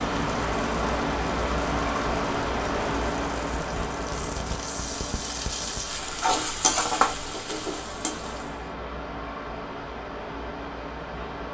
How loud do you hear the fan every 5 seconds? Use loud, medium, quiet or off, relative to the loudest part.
loud, medium, medium.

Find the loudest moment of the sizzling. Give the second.
7 s.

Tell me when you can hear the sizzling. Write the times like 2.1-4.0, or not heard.
0.0-8.7.